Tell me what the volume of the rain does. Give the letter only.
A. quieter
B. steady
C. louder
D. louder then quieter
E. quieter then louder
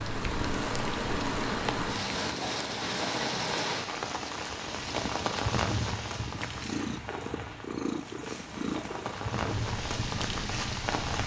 E.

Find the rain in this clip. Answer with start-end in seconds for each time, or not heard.
0.0-11.2.